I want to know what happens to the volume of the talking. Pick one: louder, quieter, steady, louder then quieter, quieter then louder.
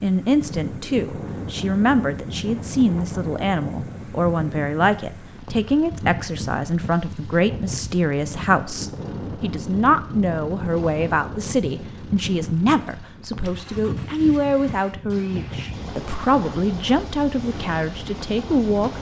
steady.